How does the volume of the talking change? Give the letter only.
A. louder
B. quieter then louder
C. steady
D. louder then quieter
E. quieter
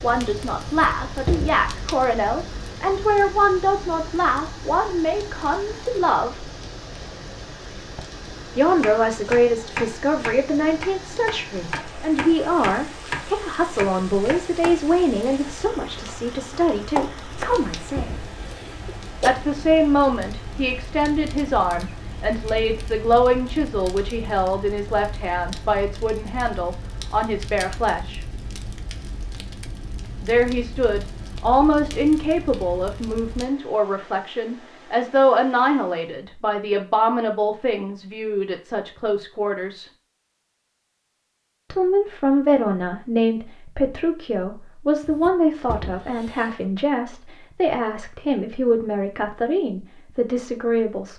C.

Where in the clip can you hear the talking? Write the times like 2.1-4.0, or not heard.
0.0-6.5, 8.6-18.2, 19.2-28.2, 30.2-39.9, 41.7-51.1.